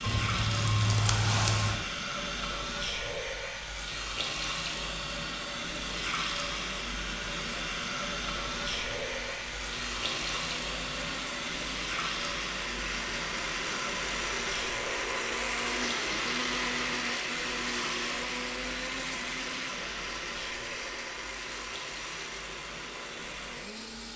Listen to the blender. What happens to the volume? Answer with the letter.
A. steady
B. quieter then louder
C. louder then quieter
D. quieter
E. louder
C.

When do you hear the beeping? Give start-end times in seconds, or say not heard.
0.0-1.8.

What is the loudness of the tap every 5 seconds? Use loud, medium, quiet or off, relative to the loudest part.
loud, loud, loud, medium, medium.